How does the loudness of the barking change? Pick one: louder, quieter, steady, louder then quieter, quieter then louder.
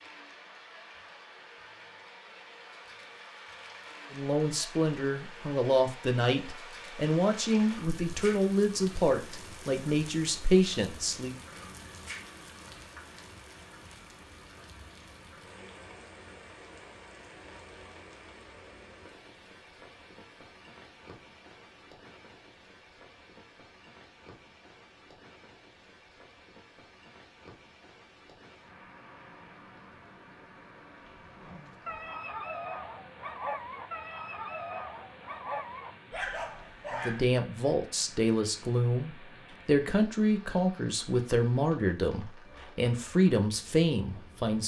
steady.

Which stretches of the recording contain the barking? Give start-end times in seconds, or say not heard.
31.4-37.3.